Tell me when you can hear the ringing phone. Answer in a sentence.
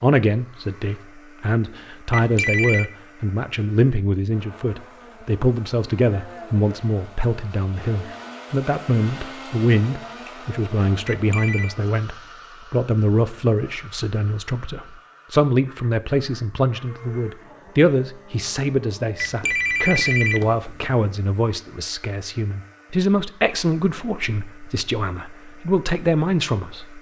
The ringing phone can be heard from 2.1 to 2.9 s, from 11.1 to 11.8 s and from 19.1 to 20.9 s.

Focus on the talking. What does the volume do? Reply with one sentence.
The volume of the talking stays about the same.